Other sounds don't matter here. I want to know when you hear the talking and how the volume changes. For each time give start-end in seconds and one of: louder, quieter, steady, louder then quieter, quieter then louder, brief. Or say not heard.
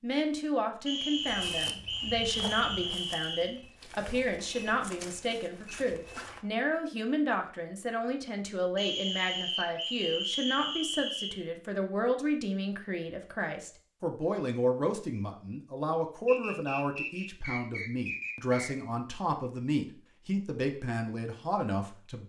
0.0-22.2 steady.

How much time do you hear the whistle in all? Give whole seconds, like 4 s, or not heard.
8 s.